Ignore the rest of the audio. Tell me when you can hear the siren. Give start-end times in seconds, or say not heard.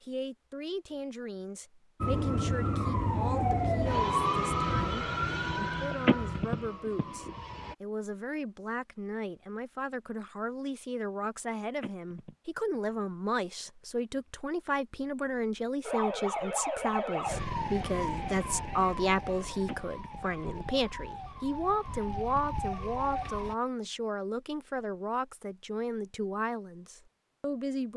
2.0-7.8, 15.8-23.6.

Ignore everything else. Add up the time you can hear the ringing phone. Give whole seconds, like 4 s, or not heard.
3 s.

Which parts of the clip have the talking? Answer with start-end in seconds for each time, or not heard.
0.0-27.9.